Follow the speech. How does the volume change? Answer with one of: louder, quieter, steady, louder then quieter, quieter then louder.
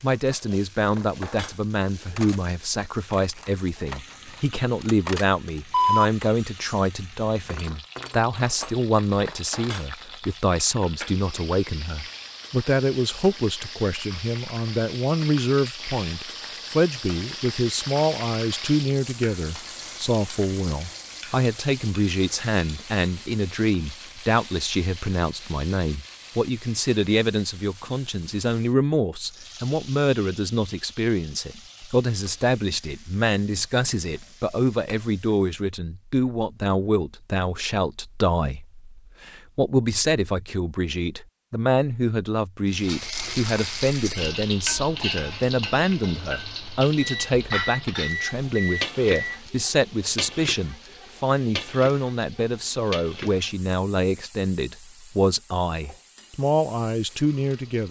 steady.